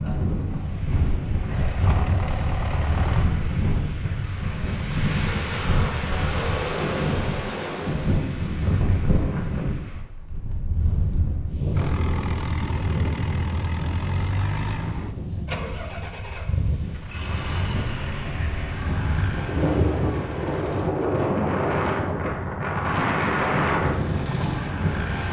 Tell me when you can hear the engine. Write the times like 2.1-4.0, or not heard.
0.2-3.2, 11.7-20.9, 23.8-25.2.